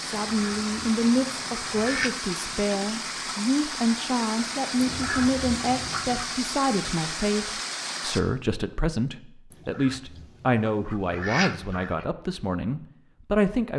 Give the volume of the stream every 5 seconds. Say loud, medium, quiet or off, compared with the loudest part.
loud, loud, off.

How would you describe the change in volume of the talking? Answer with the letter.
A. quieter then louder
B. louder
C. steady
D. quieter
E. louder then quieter
C.